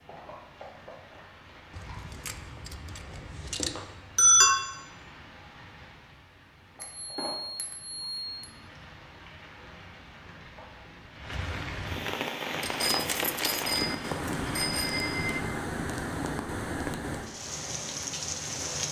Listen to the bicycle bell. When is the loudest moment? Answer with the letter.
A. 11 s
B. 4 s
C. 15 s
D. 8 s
B.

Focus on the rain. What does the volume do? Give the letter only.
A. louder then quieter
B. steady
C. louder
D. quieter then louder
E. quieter
C.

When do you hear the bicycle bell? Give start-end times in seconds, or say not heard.
3.8-4.5, 6.8-8.5, 12.6-15.4.